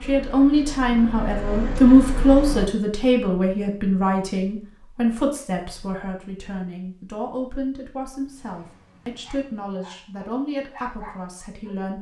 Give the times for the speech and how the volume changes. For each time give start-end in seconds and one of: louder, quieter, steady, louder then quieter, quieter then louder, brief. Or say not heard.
0.0-11.9 quieter.